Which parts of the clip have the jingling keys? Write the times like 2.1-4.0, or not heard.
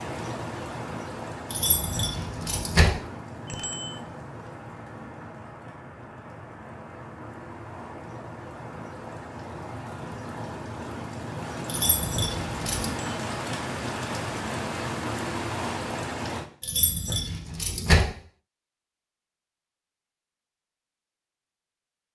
1.5-2.9, 11.7-12.9, 16.6-18.1.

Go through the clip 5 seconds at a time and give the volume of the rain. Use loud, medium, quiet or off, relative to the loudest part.
medium, medium, loud, loud, off.